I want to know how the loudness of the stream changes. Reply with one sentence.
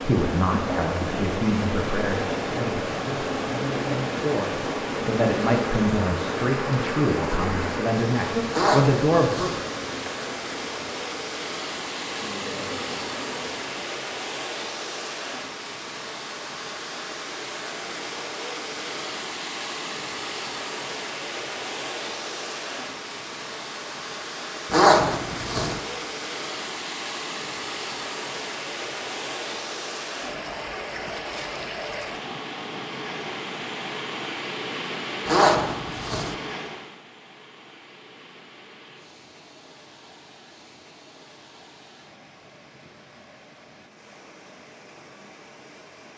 The volume of the stream goes down.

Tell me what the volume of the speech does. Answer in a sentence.
The loudness of the speech goes down, then up.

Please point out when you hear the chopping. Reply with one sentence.
You can't hear the chopping here.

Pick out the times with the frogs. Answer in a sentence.
You can't hear the frogs here.